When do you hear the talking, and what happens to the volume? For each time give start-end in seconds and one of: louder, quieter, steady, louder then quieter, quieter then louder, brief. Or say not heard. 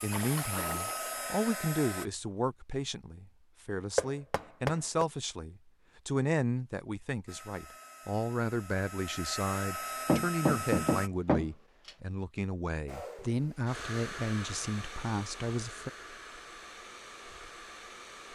0.0-15.9 steady.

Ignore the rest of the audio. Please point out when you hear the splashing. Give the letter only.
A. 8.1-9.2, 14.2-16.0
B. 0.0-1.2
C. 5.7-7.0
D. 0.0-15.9
B.